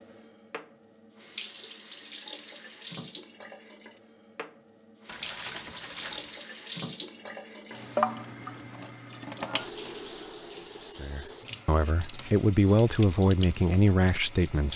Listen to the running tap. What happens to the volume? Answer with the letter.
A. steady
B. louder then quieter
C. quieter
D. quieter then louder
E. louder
B.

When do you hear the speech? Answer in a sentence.
The speech can be heard from 11.0 to 14.7 s.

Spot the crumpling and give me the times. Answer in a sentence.
You can hear the crumpling from 5.0 to 6.4 s.